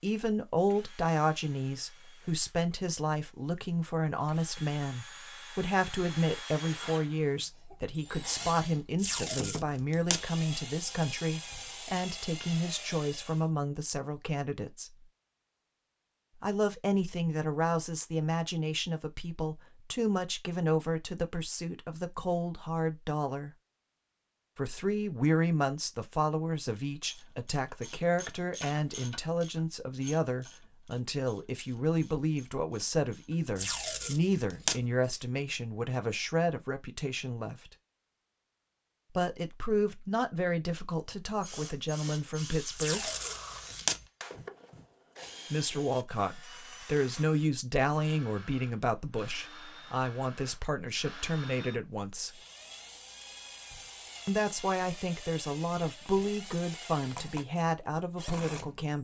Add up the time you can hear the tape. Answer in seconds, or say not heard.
4 s.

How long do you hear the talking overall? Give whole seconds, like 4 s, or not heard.
51 s.